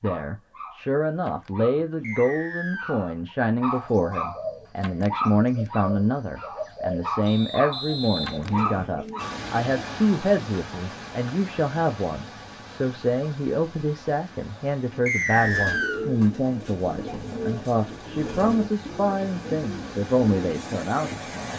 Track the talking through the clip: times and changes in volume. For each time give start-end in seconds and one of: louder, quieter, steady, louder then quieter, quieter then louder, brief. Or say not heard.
0.0-21.5 steady.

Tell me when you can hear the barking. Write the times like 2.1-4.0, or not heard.
0.0-9.4.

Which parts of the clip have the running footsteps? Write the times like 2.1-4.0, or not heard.
not heard.